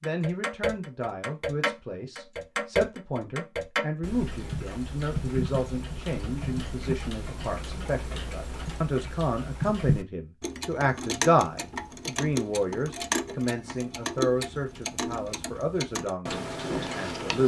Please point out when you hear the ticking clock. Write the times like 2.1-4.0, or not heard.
0.0-17.4.